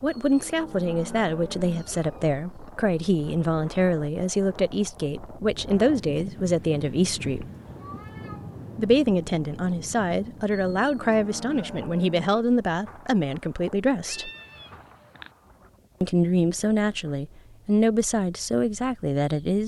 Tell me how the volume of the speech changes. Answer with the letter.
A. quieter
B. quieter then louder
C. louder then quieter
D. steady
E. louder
D.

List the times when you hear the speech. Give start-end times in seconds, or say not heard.
0.0-7.5, 8.8-14.3, 16.0-19.6.